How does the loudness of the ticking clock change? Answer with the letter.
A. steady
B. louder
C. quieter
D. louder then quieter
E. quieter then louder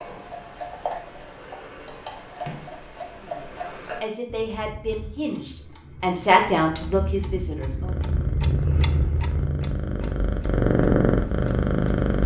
E.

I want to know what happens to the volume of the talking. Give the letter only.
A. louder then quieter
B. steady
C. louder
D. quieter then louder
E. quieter
A.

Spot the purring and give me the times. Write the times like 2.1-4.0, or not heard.
7.8-12.2.